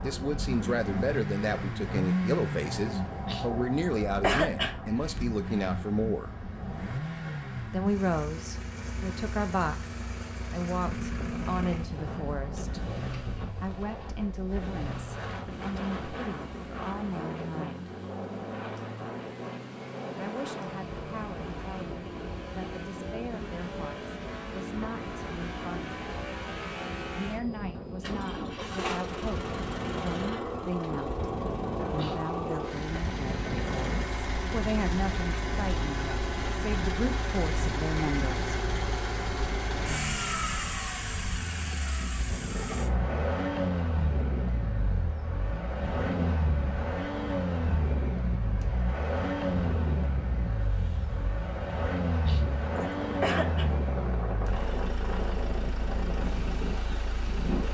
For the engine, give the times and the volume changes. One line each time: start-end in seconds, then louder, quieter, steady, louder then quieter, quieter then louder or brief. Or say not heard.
0.0-57.6 quieter then louder.